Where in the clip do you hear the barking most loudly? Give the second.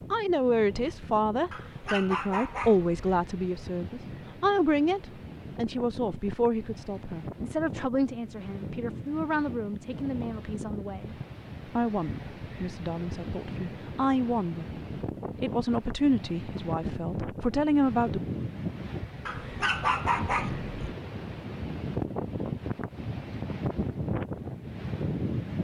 20 s.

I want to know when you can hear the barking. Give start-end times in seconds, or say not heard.
1.5-3.0, 19.2-20.9.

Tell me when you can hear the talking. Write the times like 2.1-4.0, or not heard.
0.1-14.7, 15.3-18.2.